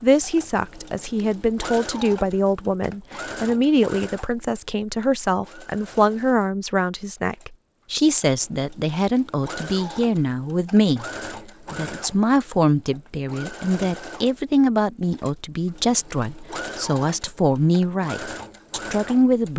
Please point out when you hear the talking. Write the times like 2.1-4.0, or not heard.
0.0-11.1, 11.7-19.5.